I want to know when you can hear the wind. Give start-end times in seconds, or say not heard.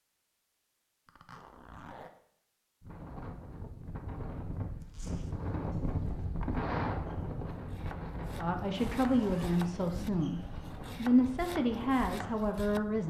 2.8-13.0.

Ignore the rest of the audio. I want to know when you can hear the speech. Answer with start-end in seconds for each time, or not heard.
8.3-13.0.